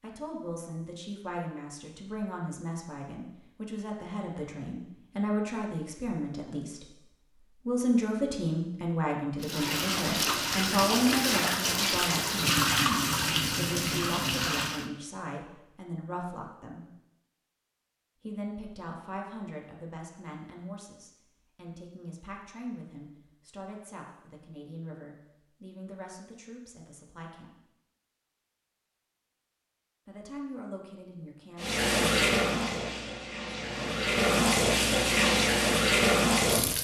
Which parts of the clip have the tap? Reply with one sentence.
The tap can be heard from 9.4 to 14.9 s and from 31.6 to 36.7 s.